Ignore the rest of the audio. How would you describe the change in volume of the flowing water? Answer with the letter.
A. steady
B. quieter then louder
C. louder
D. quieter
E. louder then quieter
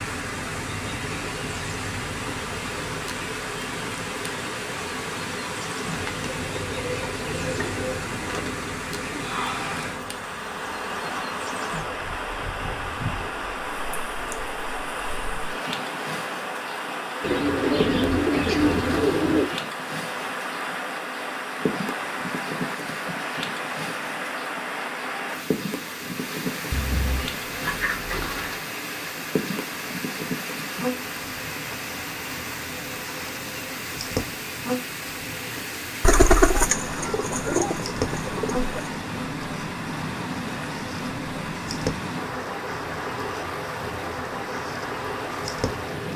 A.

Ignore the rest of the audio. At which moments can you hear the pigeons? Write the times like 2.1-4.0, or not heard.
5.9-8.7, 17.2-19.5, 26.7-28.6, 36.0-38.8.